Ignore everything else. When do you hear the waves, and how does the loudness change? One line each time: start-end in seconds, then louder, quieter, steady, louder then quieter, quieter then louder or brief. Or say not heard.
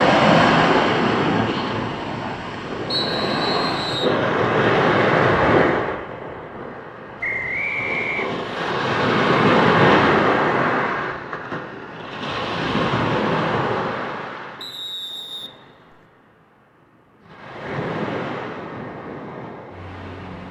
0.0-20.4 quieter.